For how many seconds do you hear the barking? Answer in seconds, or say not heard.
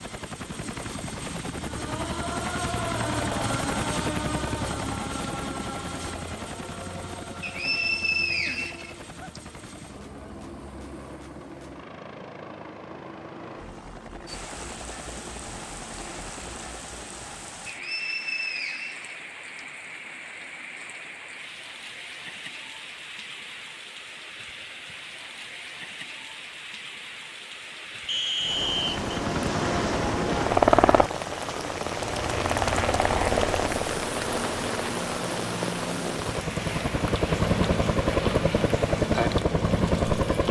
not heard.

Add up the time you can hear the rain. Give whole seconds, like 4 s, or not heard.
26 s.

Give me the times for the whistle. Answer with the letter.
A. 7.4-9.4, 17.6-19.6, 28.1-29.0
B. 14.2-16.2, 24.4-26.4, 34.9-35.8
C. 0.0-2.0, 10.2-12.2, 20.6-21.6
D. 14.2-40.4
A.